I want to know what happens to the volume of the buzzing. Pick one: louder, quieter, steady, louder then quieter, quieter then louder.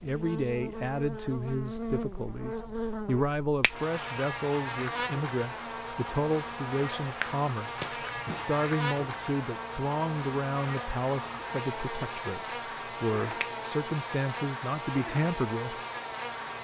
steady.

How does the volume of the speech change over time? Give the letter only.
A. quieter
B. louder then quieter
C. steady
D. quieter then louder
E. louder
C.